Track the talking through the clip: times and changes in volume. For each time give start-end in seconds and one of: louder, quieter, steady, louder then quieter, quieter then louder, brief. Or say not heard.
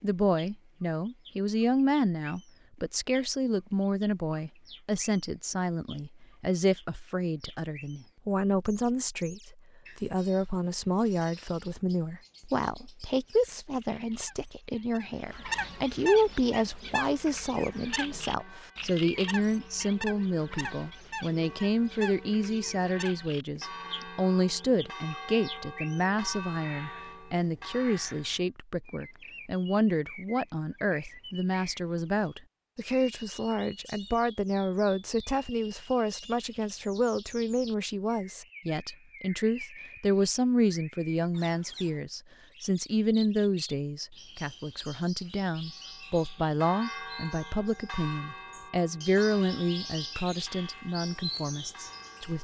0.0-52.3 steady.